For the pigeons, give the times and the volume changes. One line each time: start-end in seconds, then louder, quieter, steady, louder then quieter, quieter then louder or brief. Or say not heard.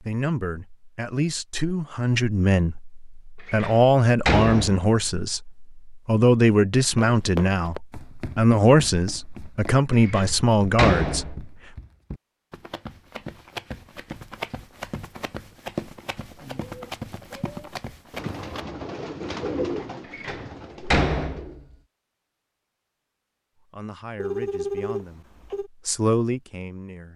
16.4-21.6 louder then quieter.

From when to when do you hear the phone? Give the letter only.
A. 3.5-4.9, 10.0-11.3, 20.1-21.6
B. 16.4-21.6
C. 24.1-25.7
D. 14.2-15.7
C.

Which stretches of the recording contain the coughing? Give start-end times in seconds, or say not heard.
not heard.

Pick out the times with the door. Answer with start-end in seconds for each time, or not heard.
3.5-4.9, 10.0-11.3, 20.1-21.6.